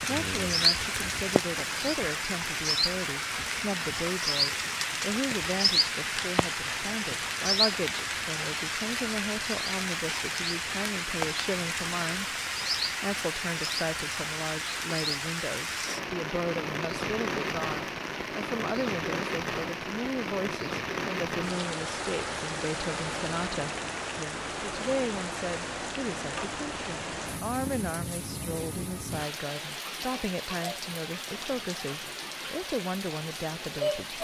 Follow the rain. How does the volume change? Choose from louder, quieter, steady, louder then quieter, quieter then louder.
quieter.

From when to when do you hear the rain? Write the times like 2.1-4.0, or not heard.
0.0-34.2.